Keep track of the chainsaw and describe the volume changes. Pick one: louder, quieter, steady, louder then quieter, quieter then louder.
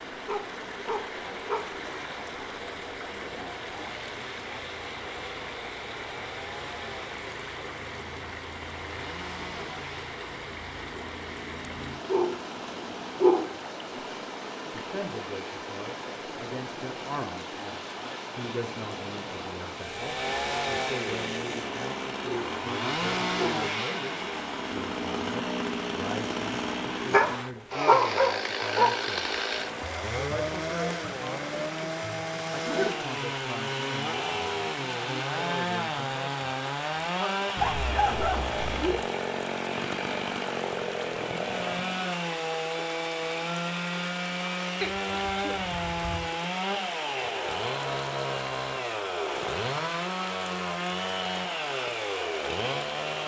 louder.